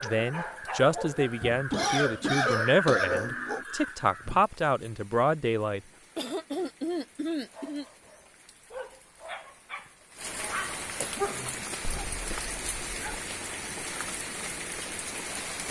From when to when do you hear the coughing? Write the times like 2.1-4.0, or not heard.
1.7-3.6, 6.2-7.8, 11.0-12.4.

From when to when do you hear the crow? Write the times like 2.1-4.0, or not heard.
0.0-4.4.